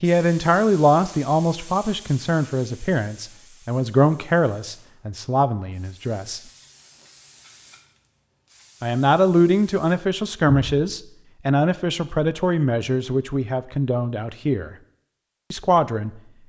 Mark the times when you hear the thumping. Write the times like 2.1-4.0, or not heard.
10.4-10.8.